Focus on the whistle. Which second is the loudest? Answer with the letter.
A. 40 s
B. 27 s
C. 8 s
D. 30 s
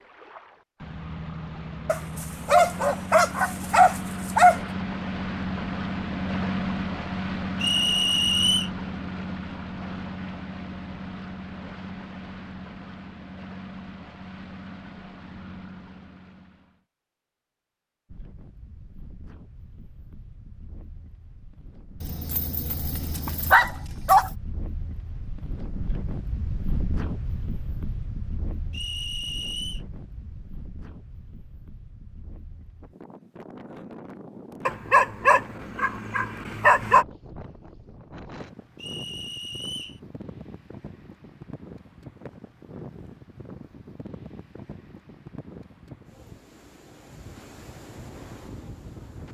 C.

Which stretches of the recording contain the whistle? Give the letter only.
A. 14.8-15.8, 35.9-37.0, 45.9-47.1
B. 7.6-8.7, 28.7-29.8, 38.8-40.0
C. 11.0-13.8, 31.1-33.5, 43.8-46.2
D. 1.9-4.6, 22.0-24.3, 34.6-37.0
B.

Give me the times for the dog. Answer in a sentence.
The dog can be heard from 1.9 to 4.6 s, from 22.0 to 24.3 s and from 34.6 to 37.0 s.